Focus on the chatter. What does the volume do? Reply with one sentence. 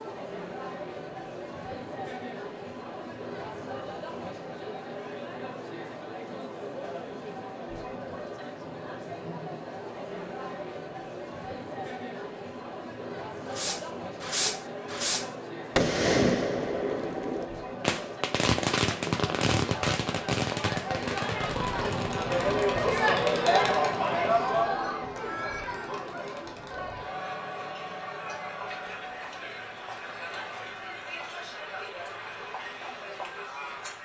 The loudness of the chatter goes up, then down.